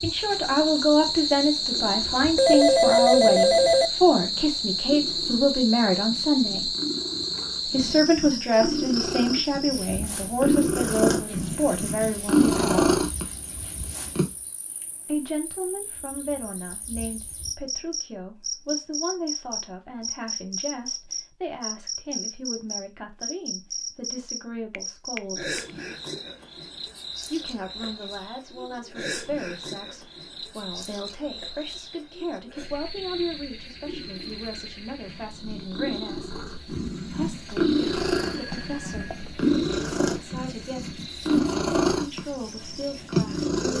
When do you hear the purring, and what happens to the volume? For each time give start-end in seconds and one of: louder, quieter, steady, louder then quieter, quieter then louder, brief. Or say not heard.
0.0-14.3 louder
32.5-43.7 louder.